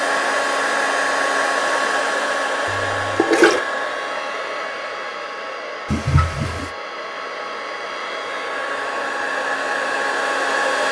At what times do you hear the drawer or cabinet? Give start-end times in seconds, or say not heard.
not heard.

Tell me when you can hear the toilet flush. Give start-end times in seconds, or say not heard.
2.6-3.6, 5.9-6.7.